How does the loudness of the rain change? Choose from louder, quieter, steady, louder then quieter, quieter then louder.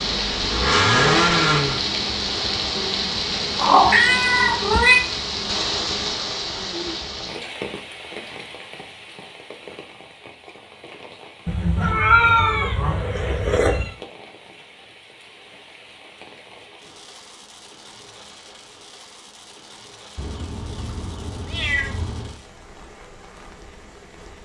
quieter.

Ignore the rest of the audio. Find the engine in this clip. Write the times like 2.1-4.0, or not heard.
0.1-1.9.